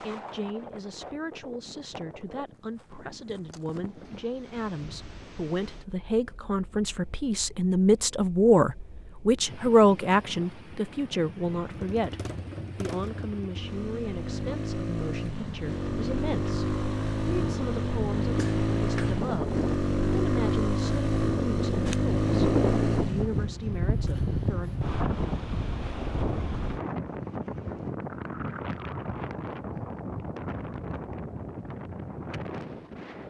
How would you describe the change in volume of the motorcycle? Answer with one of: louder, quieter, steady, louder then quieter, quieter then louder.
louder.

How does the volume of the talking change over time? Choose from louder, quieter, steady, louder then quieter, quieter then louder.
louder then quieter.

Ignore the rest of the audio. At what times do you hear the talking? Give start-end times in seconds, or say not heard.
0.0-24.8.